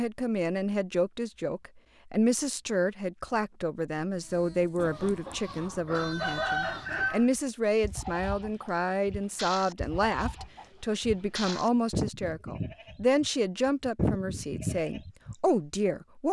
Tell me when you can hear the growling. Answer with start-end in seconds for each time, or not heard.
not heard.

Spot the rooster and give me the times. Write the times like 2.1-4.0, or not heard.
4.8-7.2.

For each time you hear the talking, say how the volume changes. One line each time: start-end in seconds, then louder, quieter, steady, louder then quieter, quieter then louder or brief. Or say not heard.
0.0-16.2 steady.